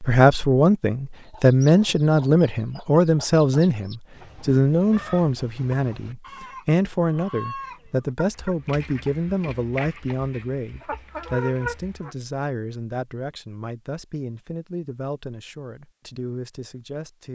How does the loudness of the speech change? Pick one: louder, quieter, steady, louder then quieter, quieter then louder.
quieter.